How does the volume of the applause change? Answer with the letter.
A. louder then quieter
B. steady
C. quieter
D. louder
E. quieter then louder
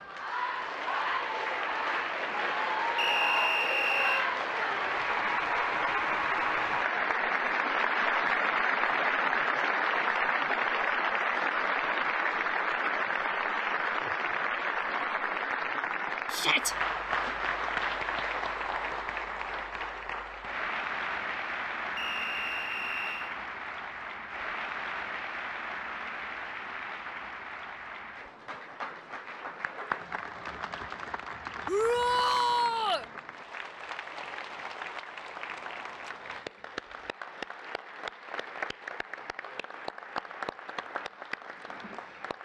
C.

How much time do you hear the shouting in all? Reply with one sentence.
The shouting can be heard for 2 seconds in total.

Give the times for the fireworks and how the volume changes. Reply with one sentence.
You can't hear the fireworks here.